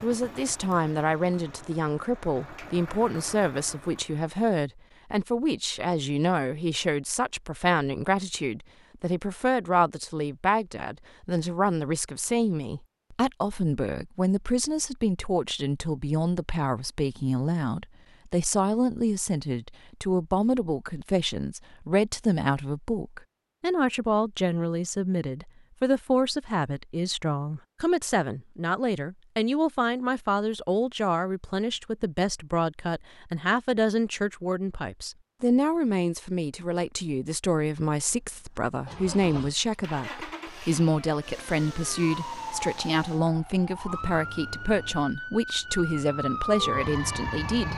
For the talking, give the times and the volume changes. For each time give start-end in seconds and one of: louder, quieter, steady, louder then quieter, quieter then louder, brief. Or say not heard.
0.0-47.7 steady.